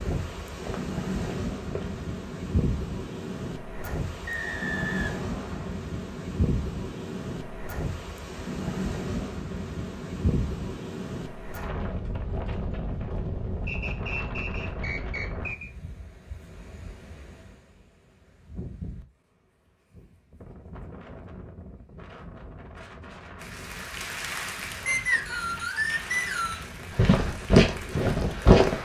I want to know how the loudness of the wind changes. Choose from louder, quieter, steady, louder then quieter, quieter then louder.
quieter.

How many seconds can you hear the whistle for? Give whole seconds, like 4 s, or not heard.
5 s.